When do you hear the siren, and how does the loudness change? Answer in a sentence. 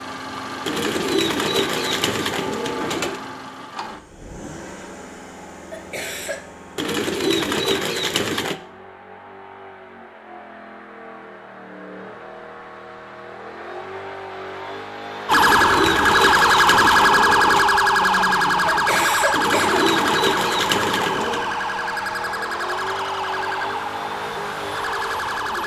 The siren can be heard from 15.2 to 25.6 s, getting quieter.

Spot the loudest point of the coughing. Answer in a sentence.
The volume of the coughing peaks at 19 seconds.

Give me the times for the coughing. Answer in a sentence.
You can hear the coughing from 5.7 to 6.4 s and from 18.6 to 19.9 s.